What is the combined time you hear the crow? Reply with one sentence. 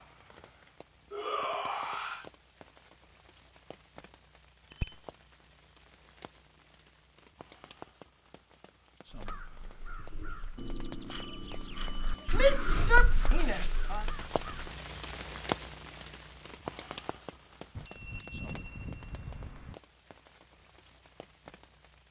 The crow can be heard for 6 seconds in total.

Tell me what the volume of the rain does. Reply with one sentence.
The volume of the rain goes up, then down.